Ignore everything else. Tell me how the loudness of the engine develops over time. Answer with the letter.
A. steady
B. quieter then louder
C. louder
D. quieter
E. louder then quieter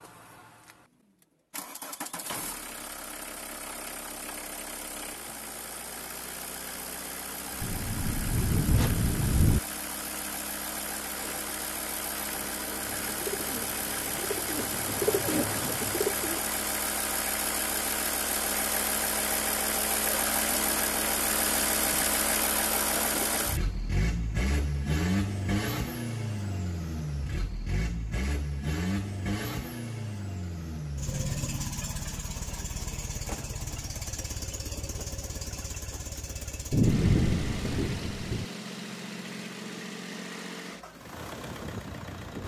E.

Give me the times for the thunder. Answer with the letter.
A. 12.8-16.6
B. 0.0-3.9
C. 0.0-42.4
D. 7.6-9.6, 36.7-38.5
D.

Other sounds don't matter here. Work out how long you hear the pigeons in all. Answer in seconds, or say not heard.
4 s.